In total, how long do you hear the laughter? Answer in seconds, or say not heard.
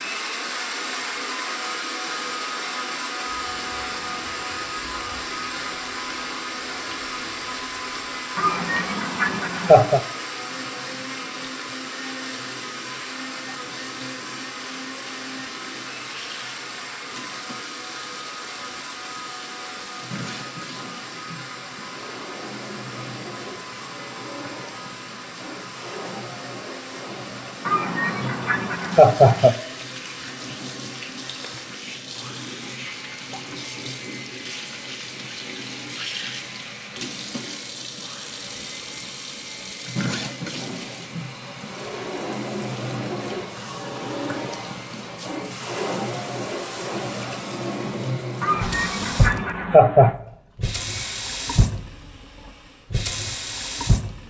5 s.